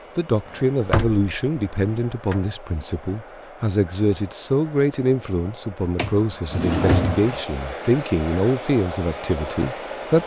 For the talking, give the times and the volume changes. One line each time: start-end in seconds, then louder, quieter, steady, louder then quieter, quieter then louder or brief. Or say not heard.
0.1-10.2 steady.